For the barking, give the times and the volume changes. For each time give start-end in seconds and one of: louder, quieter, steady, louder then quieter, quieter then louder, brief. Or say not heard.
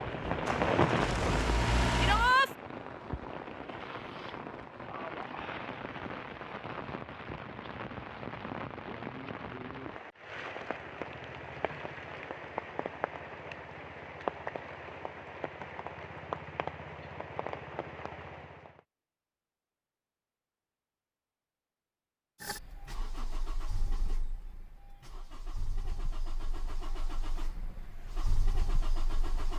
not heard.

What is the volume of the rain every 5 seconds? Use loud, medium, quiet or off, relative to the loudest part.
loud, medium, medium, medium, off, off.